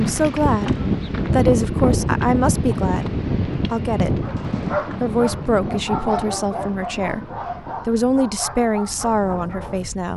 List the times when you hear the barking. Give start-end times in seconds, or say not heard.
4.2-9.8.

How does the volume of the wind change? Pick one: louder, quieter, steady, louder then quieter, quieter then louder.
quieter.